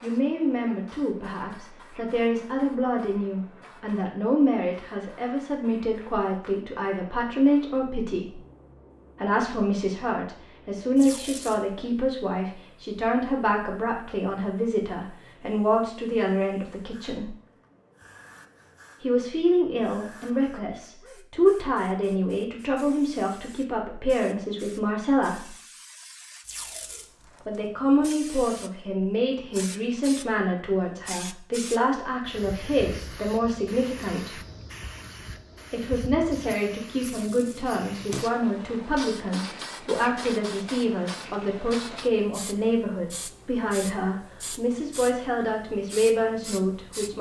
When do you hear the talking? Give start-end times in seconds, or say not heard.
0.0-8.4, 9.2-17.3, 19.0-25.5, 27.4-34.4, 35.7-47.1.